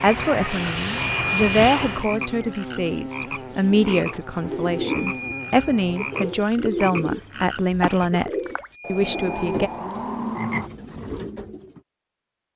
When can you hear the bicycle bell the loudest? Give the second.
1 s.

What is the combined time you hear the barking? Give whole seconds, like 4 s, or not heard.
not heard.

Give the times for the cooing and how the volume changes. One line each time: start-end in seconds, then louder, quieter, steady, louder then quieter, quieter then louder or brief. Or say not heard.
3.4-11.8 steady.